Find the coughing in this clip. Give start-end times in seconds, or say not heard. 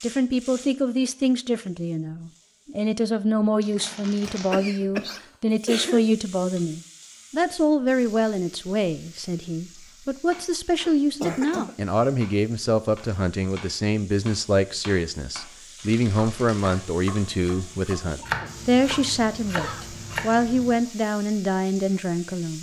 4.2-6.0, 10.8-11.8, 18.1-19.9.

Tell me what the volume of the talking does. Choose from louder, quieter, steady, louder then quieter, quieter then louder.
steady.